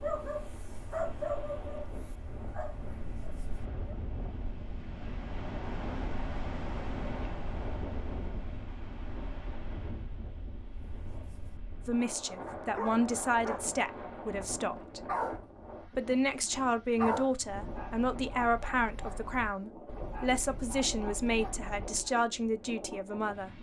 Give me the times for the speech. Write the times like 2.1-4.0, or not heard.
11.8-15.0, 15.8-23.5.